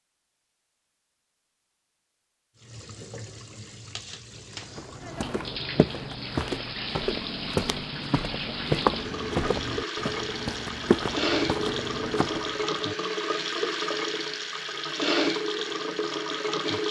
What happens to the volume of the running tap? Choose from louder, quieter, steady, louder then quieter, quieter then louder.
louder.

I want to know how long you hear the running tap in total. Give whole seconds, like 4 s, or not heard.
14 s.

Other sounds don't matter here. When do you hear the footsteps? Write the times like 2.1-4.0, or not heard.
4.6-12.8.